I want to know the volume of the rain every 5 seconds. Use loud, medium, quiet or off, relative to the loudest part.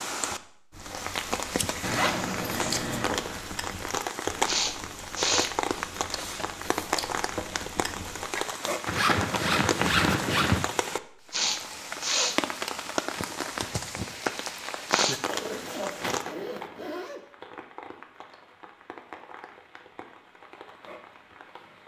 loud, loud, loud, medium, quiet.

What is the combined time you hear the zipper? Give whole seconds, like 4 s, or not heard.
5 s.